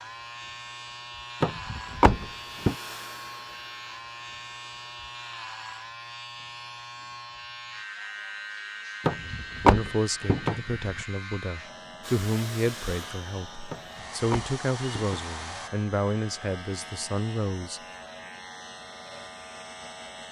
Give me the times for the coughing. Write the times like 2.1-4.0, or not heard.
not heard.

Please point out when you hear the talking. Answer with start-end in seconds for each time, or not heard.
9.2-17.8.